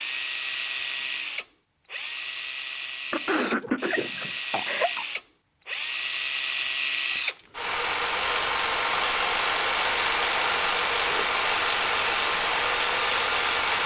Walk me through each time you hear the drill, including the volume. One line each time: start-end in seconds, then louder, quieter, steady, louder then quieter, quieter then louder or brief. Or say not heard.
0.0-13.8 louder.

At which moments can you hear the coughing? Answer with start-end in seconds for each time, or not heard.
3.1-5.0, 10.9-11.4.